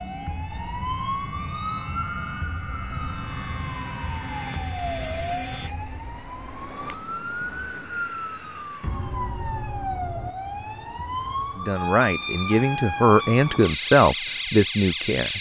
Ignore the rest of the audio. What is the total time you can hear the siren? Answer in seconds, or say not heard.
15 s.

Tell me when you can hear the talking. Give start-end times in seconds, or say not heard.
11.6-15.3.